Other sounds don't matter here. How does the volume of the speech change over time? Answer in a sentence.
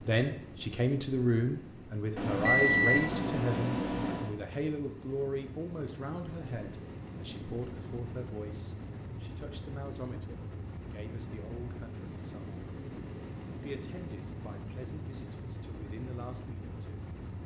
The volume of the speech goes down.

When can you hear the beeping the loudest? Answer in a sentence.
The loudest moment of the beeping is at 3 seconds.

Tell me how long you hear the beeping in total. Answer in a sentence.
You can hear the beeping for 2 seconds altogether.